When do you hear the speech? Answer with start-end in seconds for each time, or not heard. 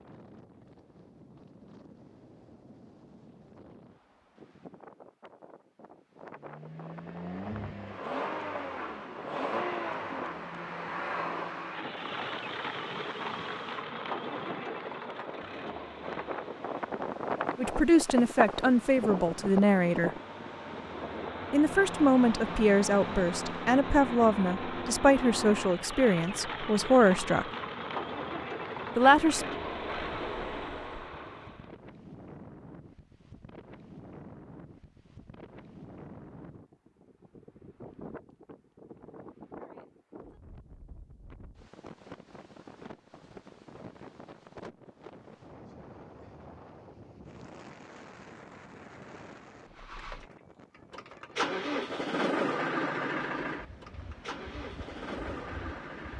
17.6-20.1, 21.5-27.4, 28.9-29.4.